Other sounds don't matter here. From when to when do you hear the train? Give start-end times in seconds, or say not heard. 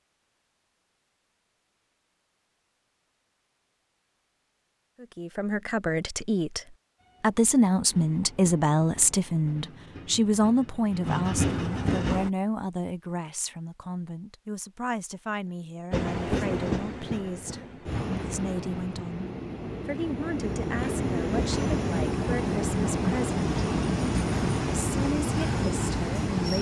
7.0-12.3, 15.9-26.5.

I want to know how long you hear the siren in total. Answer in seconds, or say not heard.
not heard.